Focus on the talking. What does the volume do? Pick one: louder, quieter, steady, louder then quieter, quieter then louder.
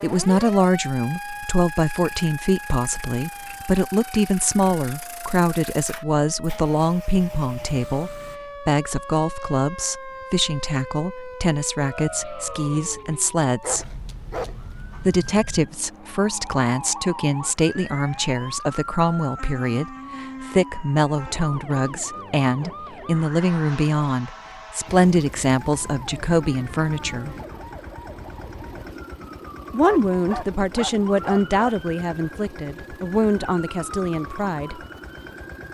steady.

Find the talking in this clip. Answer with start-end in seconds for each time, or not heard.
0.0-14.0, 15.0-27.4, 29.7-34.8.